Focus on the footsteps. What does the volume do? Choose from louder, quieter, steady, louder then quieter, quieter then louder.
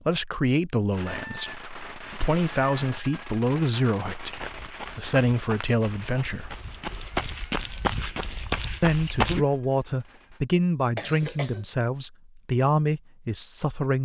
louder.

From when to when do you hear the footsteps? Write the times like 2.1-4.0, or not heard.
4.2-9.4.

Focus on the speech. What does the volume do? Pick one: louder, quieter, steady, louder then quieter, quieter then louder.
steady.